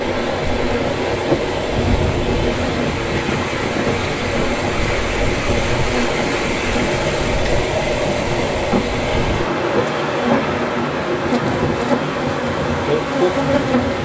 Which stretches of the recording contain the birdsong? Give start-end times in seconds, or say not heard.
not heard.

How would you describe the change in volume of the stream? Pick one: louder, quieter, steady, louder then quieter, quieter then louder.
steady.